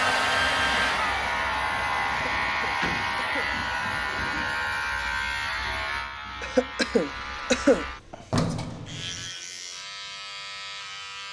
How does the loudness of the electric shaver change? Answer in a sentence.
The volume of the electric shaver goes down.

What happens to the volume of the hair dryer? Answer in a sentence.
The volume of the hair dryer goes down.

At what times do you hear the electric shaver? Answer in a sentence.
The electric shaver can be heard from 0.0 to 11.2 s.